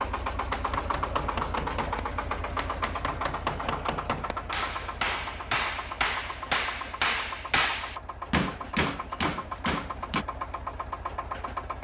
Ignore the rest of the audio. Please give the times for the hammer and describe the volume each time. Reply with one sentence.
You can hear the hammer from 0.4 to 10.2 s, getting louder.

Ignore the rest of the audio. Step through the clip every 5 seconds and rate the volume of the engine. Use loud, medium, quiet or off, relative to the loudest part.
loud, medium, loud.